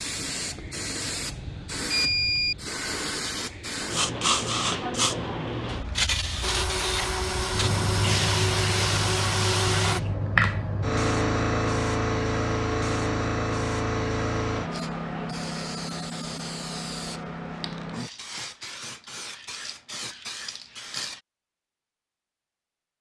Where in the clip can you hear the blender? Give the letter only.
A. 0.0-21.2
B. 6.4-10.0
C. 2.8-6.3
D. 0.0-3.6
B.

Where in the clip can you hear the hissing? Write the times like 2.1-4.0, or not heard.
0.0-21.2.